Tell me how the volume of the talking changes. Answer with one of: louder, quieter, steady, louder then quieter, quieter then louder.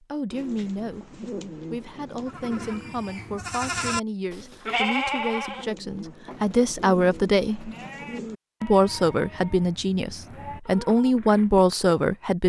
louder.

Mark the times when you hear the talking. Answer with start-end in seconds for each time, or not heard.
0.0-7.7, 8.6-12.4.